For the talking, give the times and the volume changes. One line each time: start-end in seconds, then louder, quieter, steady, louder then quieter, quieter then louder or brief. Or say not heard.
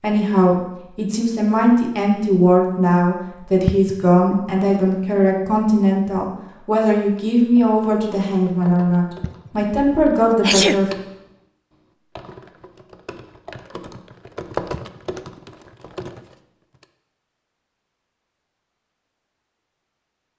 0.0-10.9 steady.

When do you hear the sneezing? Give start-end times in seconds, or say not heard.
3.6-4.3, 9.2-10.8, 14.8-15.4.